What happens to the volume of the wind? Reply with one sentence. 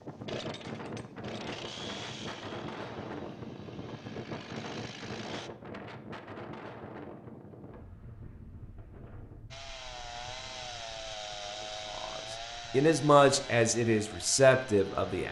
The loudness of the wind goes down.